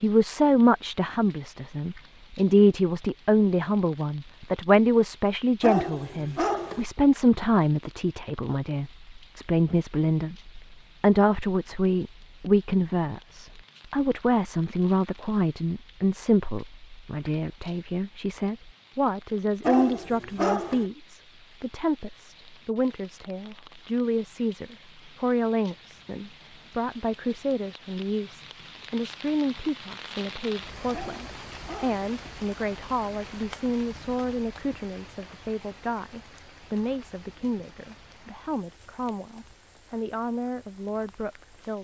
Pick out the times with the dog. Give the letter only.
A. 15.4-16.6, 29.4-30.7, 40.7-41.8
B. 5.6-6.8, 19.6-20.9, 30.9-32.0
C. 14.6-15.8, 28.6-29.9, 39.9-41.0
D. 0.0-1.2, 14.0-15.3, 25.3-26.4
B.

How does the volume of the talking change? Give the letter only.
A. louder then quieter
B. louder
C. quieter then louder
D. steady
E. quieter
E.